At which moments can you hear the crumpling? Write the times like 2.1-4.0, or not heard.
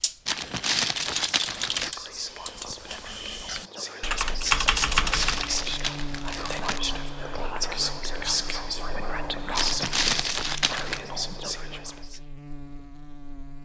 0.2-1.9, 5.0-6.8, 9.6-11.0.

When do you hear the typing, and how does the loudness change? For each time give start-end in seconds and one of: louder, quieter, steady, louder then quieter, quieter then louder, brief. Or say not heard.
0.0-5.6 quieter then louder.